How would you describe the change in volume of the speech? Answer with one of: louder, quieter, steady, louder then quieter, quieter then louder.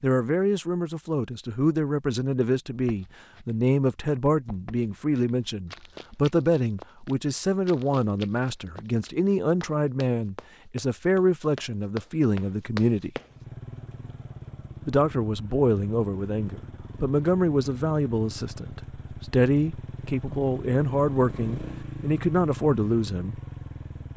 steady.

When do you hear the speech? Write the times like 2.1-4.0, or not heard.
0.0-13.1, 14.8-23.4.